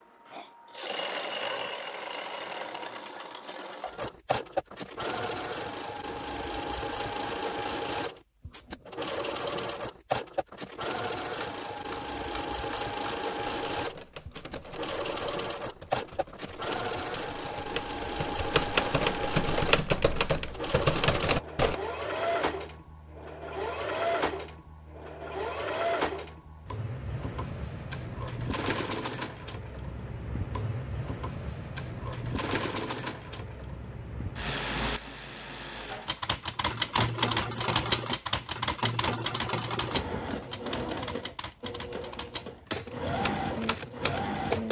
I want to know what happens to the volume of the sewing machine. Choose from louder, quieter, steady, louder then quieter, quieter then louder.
steady.